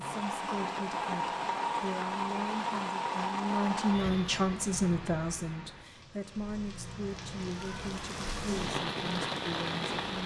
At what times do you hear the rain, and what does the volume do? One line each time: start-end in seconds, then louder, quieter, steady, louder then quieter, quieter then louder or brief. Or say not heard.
0.0-10.2 quieter then louder.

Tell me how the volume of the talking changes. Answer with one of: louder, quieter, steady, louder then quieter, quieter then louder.
louder then quieter.